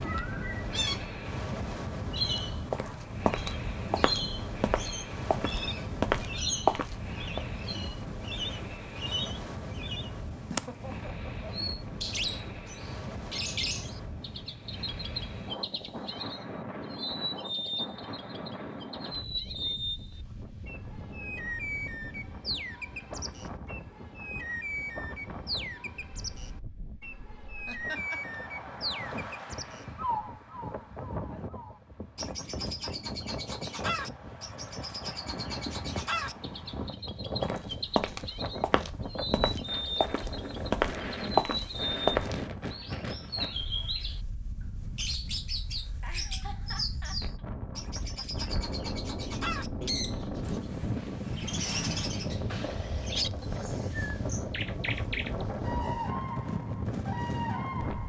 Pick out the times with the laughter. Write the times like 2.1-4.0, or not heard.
10.5-11.8, 27.6-28.4, 45.9-47.5.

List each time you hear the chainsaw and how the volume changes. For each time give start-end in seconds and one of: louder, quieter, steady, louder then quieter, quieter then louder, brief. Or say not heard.
not heard.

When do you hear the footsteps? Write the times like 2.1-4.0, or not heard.
2.2-7.4, 37.4-42.5.